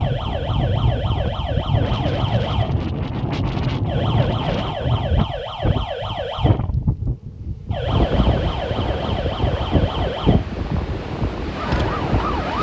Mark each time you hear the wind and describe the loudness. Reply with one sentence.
The wind can be heard from 0.0 to 12.5 s, at a steady volume.